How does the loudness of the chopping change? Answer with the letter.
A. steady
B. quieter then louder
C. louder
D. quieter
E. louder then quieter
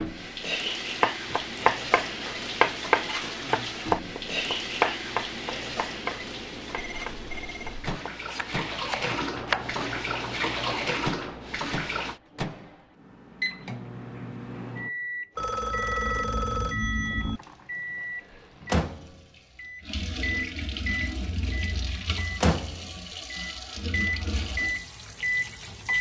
D.